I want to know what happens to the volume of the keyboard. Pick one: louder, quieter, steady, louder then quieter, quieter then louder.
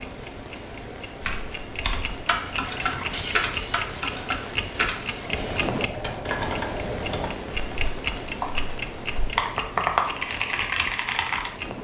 louder.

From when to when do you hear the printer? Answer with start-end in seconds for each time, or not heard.
2.5-6.2.